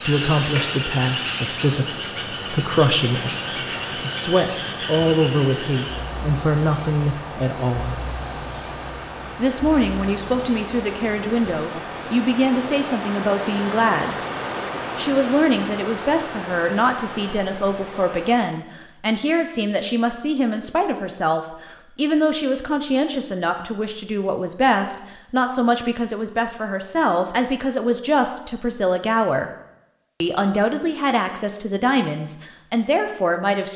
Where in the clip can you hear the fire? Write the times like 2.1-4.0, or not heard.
not heard.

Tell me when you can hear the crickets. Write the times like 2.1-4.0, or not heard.
0.0-17.0.